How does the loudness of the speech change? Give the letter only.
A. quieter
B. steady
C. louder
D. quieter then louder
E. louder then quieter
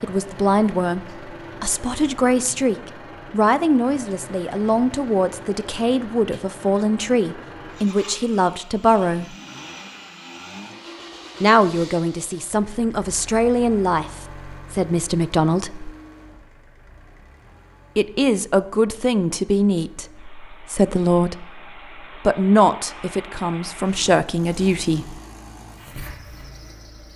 B.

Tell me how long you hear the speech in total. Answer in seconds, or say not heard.
21 s.